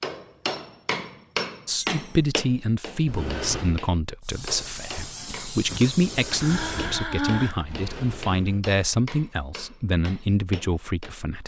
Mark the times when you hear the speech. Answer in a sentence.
The speech can be heard from 1.6 to 11.4 s.